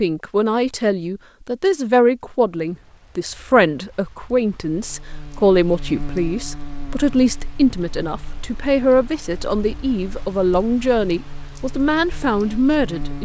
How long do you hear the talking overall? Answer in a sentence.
You can hear the talking for 13 seconds altogether.